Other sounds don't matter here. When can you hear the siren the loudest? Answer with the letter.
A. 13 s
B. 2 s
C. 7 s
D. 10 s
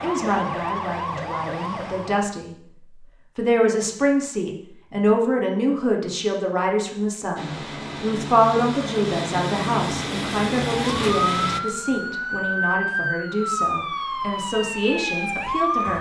A.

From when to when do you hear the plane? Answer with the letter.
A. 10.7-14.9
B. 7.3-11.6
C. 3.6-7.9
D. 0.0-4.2
B.